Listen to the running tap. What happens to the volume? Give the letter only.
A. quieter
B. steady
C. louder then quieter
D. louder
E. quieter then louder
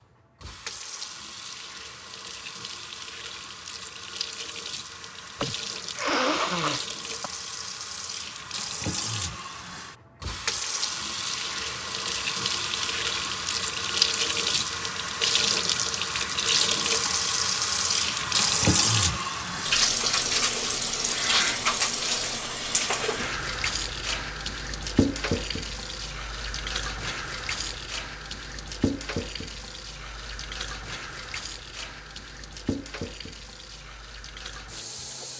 C.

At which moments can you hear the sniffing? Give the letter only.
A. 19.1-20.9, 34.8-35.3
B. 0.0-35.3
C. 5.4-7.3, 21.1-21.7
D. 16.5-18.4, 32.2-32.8
C.